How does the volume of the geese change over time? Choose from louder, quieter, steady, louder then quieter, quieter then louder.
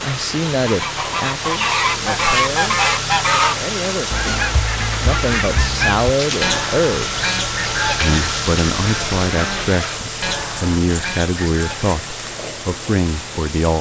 quieter.